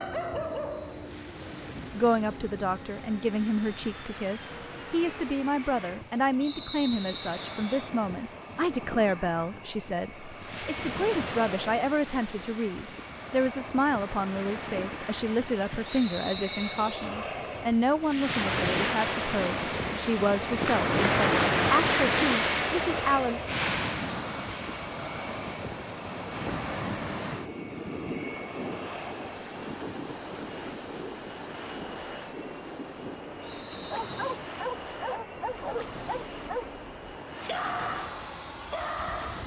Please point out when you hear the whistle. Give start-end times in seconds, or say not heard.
6.4-7.8, 15.8-17.1, 33.5-34.2.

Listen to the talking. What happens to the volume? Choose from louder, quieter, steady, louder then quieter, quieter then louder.
steady.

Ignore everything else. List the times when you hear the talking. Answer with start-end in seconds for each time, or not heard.
1.9-23.4.